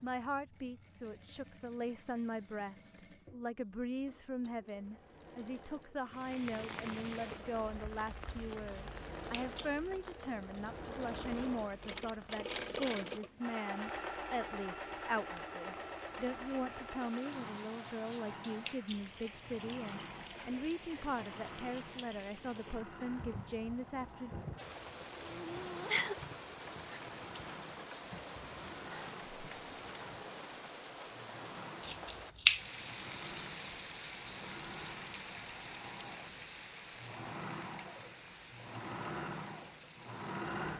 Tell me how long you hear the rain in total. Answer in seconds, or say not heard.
35 s.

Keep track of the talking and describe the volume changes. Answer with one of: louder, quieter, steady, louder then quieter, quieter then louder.
steady.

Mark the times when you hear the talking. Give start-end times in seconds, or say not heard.
0.0-24.3.